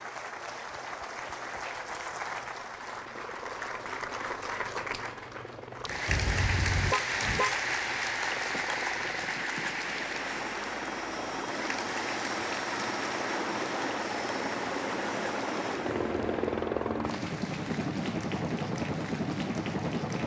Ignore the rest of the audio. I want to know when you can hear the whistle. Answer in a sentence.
You can't hear the whistle here.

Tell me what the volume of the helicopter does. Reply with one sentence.
The loudness of the helicopter goes up.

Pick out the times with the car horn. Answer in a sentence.
The car horn can be heard from 6.0 to 7.6 s.